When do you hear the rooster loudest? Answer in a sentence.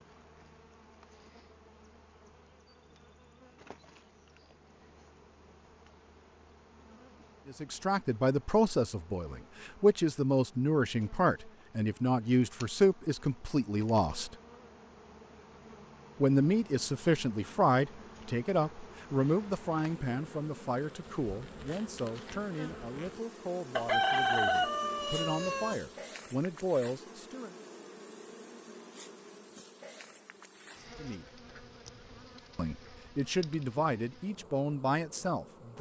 The volume of the rooster peaks at 24 seconds.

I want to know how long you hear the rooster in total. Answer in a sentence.
The rooster can be heard for 2 seconds in total.